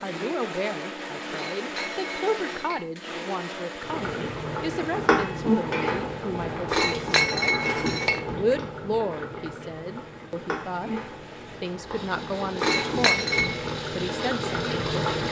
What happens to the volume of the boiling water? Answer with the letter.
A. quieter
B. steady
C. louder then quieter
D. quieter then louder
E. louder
D.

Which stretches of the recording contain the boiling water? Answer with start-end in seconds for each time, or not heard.
3.8-15.2.